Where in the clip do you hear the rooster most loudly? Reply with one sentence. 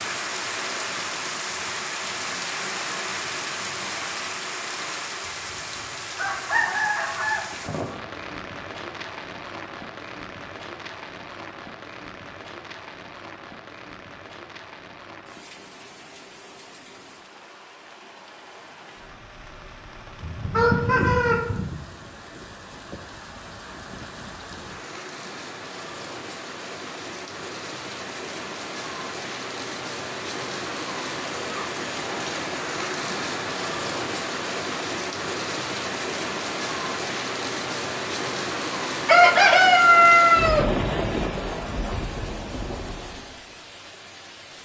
The loudest moment of the rooster is at 40 seconds.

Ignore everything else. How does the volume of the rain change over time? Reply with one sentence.
The volume of the rain goes down, then up.